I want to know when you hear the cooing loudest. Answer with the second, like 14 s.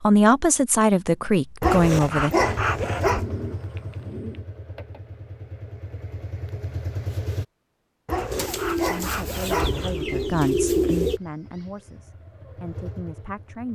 11 s.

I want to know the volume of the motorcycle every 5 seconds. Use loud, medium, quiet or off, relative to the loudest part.
loud, loud, medium.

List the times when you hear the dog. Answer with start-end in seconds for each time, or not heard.
1.6-3.2, 8.1-10.1.